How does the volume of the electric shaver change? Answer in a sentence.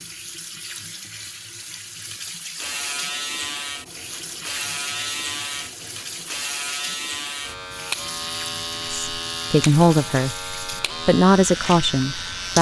The volume of the electric shaver stays about the same.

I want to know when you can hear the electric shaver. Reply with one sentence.
You can hear the electric shaver from 2.5 to 12.5 s.